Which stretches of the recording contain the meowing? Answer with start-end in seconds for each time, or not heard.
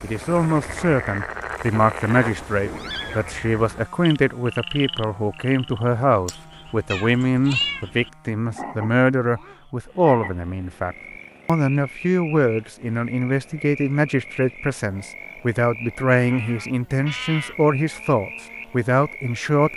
2.2-3.2, 6.9-7.8, 16.1-17.6.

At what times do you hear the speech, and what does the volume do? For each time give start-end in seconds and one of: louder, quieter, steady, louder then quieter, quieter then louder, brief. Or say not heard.
0.0-19.7 steady.